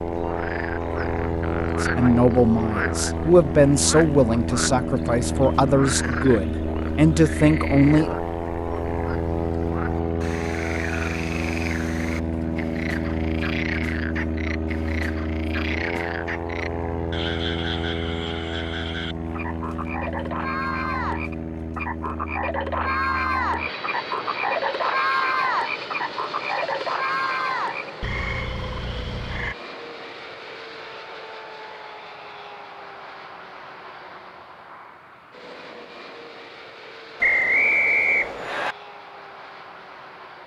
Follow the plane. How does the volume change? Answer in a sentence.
The volume of the plane goes down.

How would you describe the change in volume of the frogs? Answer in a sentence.
The loudness of the frogs goes up.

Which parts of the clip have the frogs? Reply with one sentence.
You can hear the frogs from 0.0 to 29.6 s.